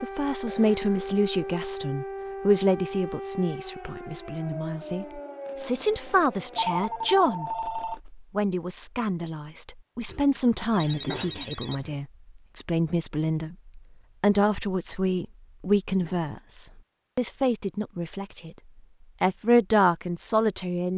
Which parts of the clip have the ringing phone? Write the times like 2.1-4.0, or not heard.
5.5-8.0, 10.7-12.0.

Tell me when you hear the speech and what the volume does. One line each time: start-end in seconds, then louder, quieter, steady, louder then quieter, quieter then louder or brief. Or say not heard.
0.0-18.6 steady
19.2-20.9 brief.